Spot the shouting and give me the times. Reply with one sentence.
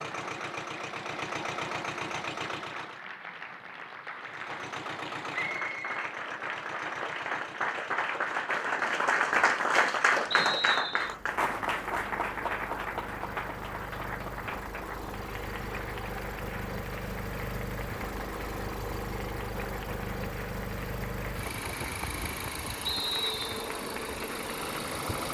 You can't hear the shouting here.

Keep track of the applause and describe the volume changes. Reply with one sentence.
The volume of the applause goes up, then down.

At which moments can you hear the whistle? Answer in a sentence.
The whistle can be heard from 5.5 to 6.1 s, from 10.3 to 11.2 s and from 22.9 to 23.7 s.